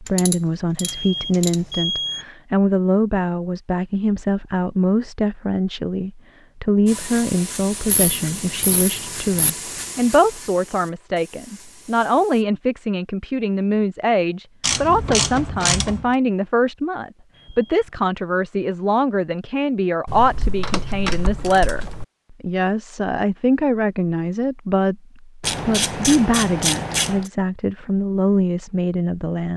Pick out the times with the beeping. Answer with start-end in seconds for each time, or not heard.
0.8-2.2, 17.3-18.0.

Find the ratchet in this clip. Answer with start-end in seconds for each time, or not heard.
0.1-1.6, 7.8-9.5, 14.6-16.1, 20.1-22.1, 25.4-27.3.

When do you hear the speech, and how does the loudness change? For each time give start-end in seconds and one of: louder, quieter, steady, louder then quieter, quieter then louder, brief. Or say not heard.
0.0-29.5 steady.